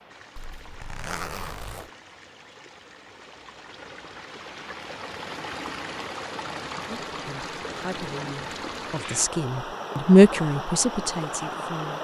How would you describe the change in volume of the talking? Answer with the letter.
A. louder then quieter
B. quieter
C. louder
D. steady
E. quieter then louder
A.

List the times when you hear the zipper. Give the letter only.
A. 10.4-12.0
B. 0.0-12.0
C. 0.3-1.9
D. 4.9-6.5
C.